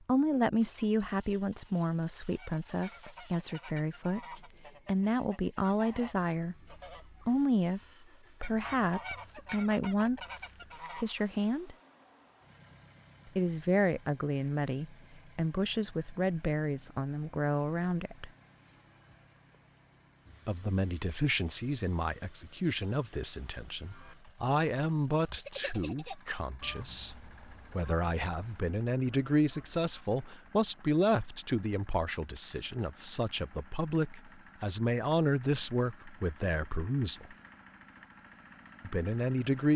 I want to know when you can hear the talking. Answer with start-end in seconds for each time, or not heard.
0.1-7.8, 8.4-11.8, 13.3-18.3, 20.4-37.4, 38.8-39.7.